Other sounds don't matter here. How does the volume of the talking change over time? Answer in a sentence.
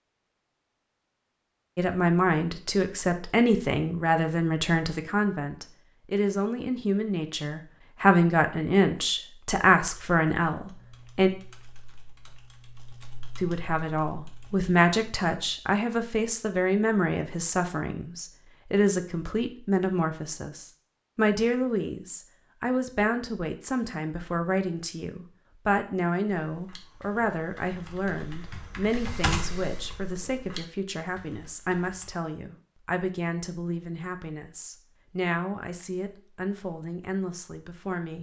The loudness of the talking goes down.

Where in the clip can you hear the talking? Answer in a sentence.
The talking can be heard from 1.8 to 11.3 s and from 13.3 to 38.1 s.